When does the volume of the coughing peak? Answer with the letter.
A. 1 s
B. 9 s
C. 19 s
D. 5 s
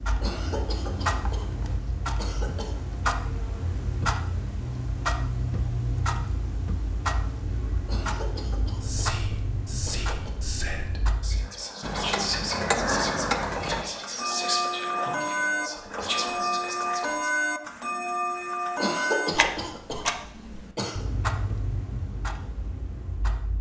C.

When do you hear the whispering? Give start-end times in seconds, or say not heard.
8.8-17.3.